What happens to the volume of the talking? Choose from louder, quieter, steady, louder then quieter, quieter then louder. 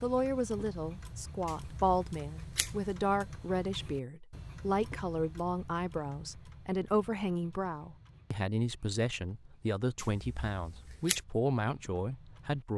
steady.